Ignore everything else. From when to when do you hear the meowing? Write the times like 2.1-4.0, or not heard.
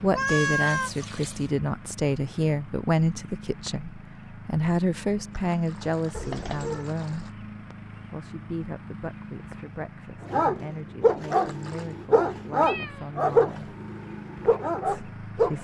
0.1-0.9, 6.1-6.9, 12.6-13.1.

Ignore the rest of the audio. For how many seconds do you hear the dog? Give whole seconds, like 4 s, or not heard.
5 s.